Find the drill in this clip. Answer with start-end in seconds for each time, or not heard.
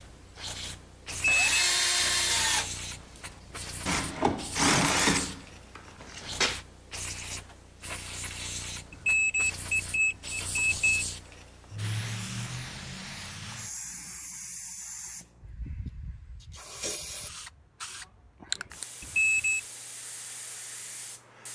0.0-6.7.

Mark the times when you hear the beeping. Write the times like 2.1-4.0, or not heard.
1.1-1.6, 8.9-10.9, 19.0-19.6.